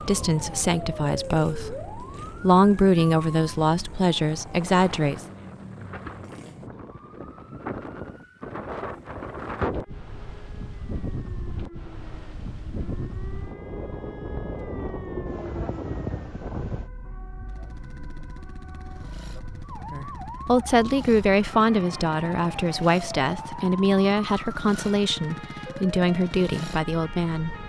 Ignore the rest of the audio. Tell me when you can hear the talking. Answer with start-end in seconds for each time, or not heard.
0.0-5.2, 19.9-27.6.